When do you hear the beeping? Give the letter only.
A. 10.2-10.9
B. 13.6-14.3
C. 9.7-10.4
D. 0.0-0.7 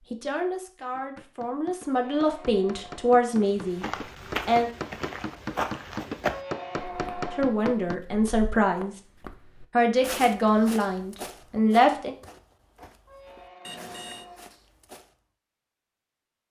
B.